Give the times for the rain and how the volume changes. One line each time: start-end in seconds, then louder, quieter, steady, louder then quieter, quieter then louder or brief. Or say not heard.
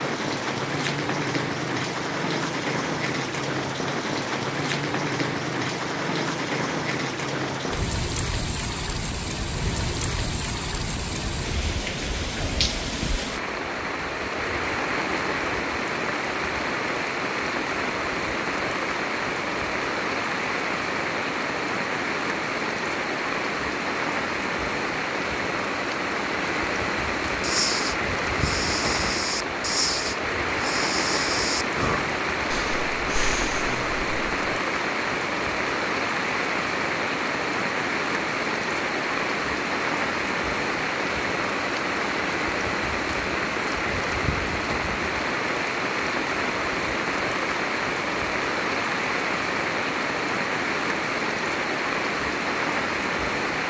0.0-53.6 steady.